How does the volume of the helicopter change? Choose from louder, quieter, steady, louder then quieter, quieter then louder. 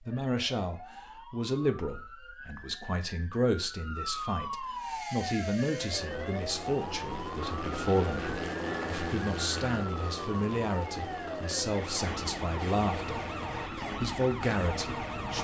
louder then quieter.